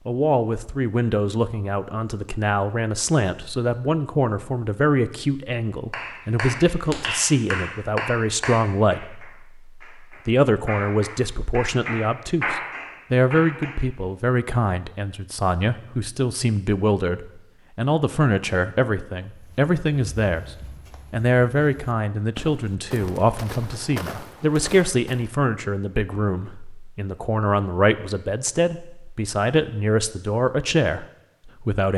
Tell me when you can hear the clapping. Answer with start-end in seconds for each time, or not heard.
5.9-13.8.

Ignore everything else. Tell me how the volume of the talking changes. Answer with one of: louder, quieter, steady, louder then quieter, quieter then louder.
steady.